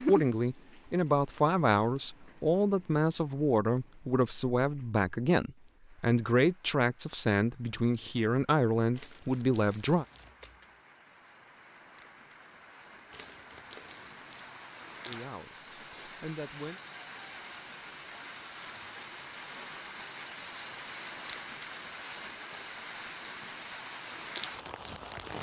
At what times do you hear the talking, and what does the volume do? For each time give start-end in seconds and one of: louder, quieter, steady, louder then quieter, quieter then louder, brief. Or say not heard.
0.0-10.1 steady
15.1-16.8 brief.